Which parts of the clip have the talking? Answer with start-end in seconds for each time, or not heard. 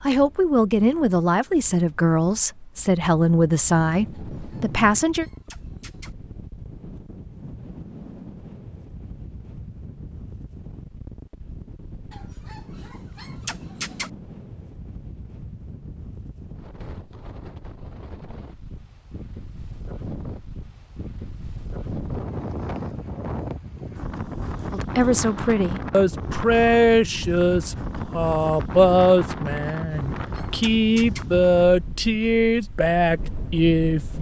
0.0-5.2, 24.7-34.1.